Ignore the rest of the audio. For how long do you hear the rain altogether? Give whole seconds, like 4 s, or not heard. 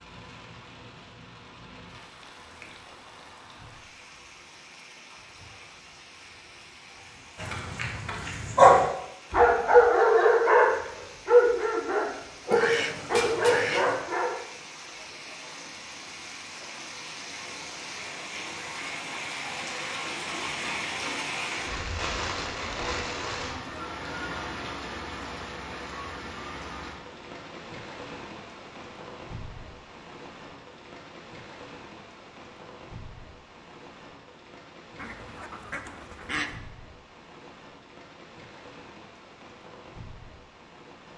41 s.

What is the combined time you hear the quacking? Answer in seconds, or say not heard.
3 s.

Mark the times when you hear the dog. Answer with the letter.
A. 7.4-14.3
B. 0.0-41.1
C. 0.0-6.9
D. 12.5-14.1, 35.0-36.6
A.